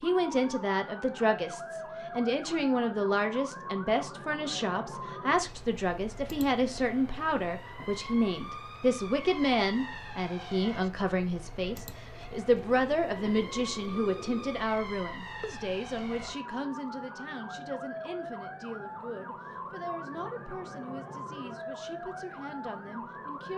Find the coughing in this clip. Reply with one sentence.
You can't hear the coughing here.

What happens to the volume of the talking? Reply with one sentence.
The loudness of the talking goes down.